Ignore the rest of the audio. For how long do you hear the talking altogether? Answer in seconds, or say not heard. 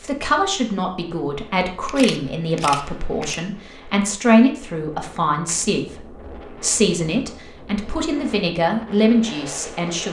10 s.